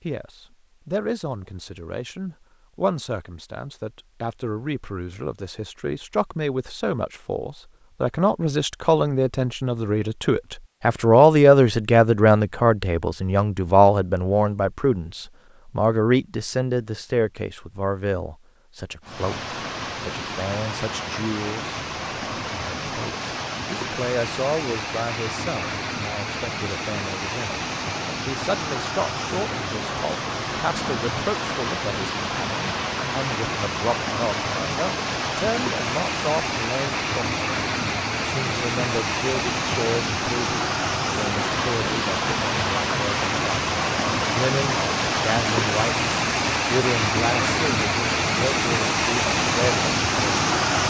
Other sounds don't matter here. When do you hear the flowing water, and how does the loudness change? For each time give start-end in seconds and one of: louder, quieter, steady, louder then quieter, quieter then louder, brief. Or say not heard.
19.0-50.8 louder.